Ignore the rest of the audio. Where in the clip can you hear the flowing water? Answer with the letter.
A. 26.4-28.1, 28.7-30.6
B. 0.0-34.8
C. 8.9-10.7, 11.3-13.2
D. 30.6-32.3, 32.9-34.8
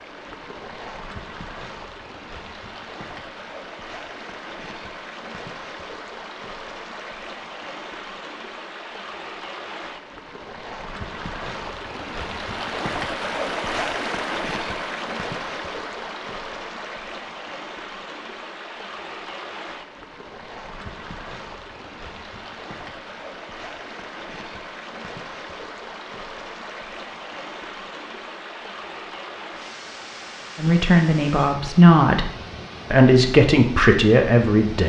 B.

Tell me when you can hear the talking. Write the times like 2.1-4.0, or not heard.
30.6-32.3, 32.9-34.8.